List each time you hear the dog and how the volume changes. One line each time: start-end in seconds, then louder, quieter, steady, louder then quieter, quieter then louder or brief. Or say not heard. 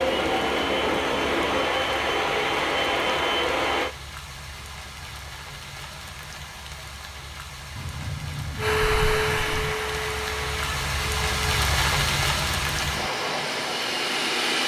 not heard.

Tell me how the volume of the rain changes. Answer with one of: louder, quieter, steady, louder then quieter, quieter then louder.
louder.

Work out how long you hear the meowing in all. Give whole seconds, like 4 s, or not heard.
2 s.